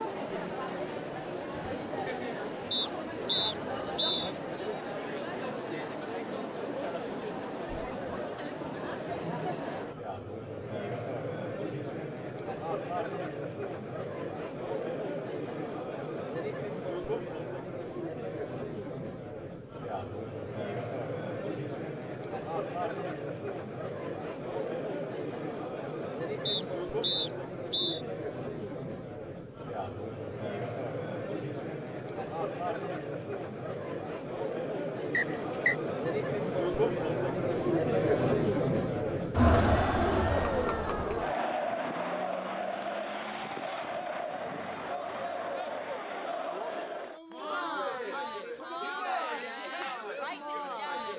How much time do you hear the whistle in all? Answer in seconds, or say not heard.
4 s.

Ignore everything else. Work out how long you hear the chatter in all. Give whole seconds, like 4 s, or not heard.
51 s.